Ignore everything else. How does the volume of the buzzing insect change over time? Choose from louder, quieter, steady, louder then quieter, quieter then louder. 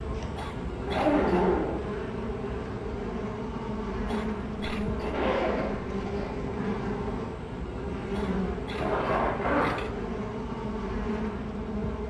steady.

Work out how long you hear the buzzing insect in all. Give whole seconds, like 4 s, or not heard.
12 s.